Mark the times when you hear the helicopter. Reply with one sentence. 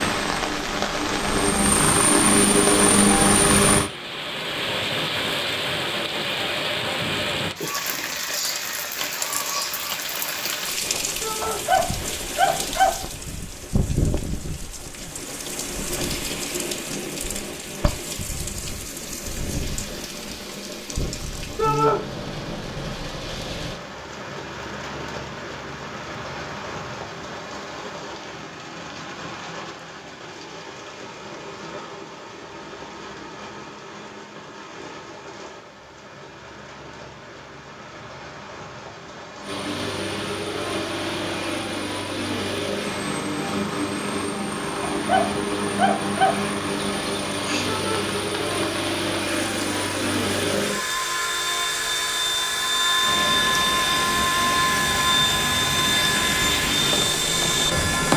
The helicopter can be heard from 0.0 to 3.9 s and from 39.4 to 58.1 s.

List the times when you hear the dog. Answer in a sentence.
The dog can be heard from 11.4 to 13.1 s and from 44.9 to 46.5 s.